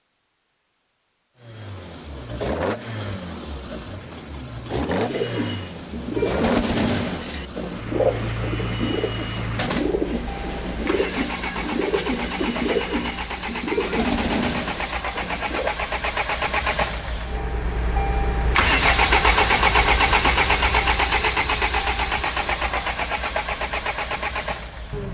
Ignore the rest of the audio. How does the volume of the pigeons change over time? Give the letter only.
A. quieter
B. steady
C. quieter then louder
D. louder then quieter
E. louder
B.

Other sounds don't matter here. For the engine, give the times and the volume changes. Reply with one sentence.
You can hear the engine from 1.4 to 25.0 s, getting louder.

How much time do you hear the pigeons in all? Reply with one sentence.
You can hear the pigeons for 11 seconds altogether.